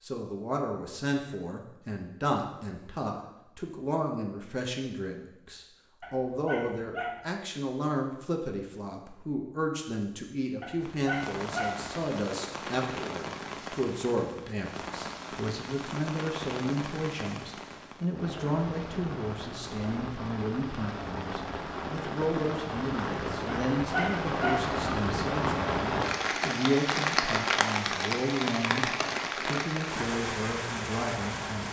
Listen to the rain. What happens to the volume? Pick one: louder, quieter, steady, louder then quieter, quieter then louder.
louder.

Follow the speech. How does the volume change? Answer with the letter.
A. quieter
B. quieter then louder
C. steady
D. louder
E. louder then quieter
C.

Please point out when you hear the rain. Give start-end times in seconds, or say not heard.
10.8-31.6.